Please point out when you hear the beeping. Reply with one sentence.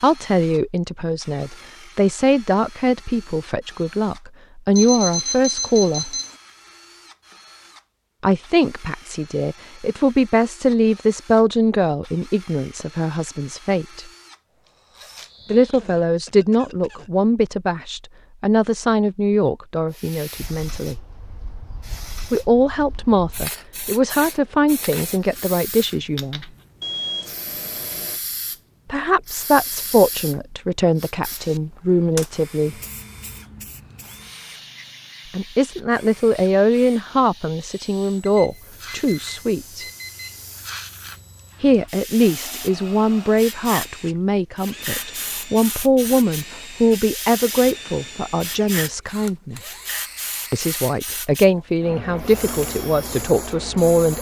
You can hear the beeping from 4.8 to 6.3 s, from 26.8 to 28.2 s and from 38.2 to 40.5 s.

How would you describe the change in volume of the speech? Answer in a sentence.
The volume of the speech stays about the same.